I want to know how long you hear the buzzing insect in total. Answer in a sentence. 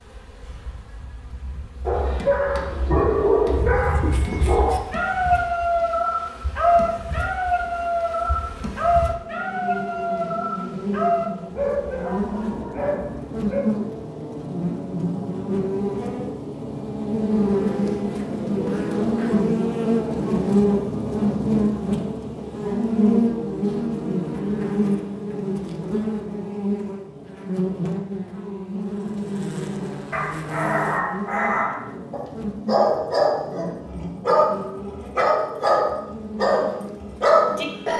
The buzzing insect can be heard for 38 seconds in total.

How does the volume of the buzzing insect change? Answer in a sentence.
The loudness of the buzzing insect goes up, then down.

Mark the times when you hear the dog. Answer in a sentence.
The dog can be heard from 1.9 to 13.7 s and from 30.1 to 37.9 s.